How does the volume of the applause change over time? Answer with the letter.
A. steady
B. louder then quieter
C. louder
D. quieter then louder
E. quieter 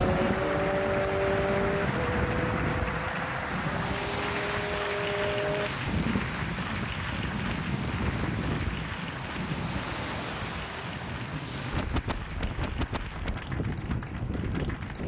E.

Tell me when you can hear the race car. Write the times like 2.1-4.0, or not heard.
0.0-5.7.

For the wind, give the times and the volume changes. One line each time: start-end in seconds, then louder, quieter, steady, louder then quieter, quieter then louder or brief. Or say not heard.
0.0-15.0 steady.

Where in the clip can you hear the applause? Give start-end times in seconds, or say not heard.
0.0-15.0.